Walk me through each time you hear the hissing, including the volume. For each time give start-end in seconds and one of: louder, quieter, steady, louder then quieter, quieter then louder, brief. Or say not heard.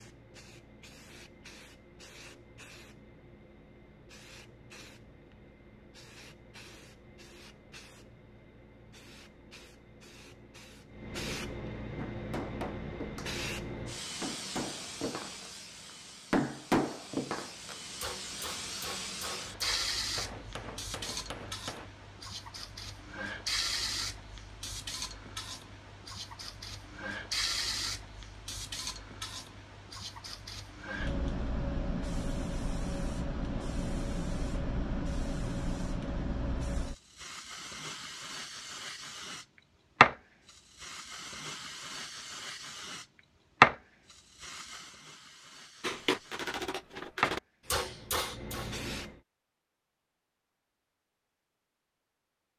0.0-49.2 louder.